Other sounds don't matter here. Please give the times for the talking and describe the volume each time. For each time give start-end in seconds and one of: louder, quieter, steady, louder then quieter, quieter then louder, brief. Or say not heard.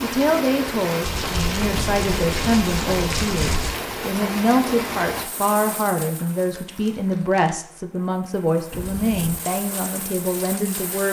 0.0-11.0 steady.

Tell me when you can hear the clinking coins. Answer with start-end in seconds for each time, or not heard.
not heard.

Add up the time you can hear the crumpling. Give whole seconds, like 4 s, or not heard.
4 s.